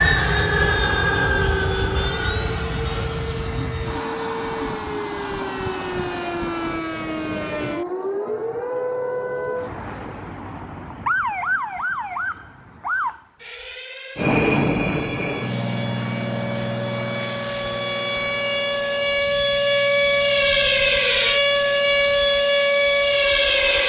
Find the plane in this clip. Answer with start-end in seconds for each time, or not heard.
0.0-6.8, 14.2-23.8.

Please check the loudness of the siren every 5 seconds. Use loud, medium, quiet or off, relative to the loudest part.
quiet, medium, medium, medium, loud.